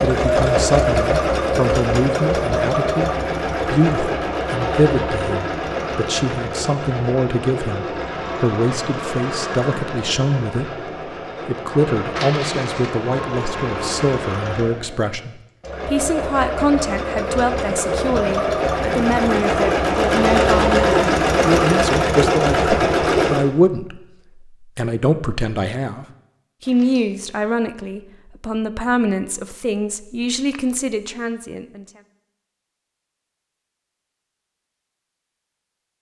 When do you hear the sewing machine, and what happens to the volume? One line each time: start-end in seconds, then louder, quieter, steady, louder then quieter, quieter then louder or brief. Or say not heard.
0.0-23.5 quieter then louder.